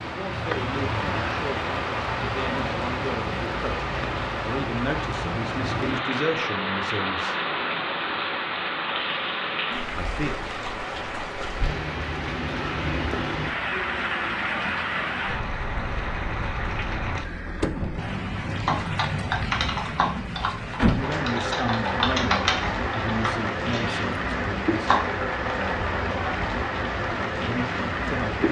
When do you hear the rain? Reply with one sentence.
The rain can be heard from 0.0 to 28.4 s.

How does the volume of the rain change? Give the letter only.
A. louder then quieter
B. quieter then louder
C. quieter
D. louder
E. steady
E.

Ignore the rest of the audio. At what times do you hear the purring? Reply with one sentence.
The purring can't be heard in this clip.